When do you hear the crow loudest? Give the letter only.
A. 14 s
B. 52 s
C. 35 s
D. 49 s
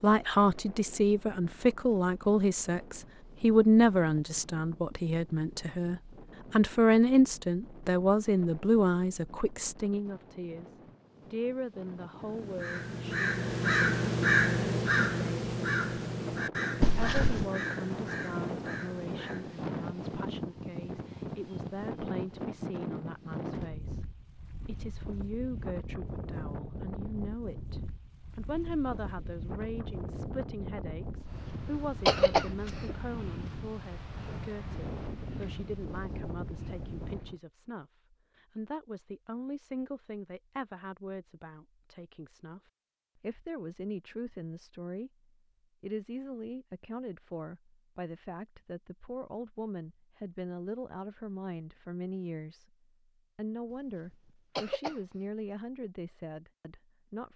A.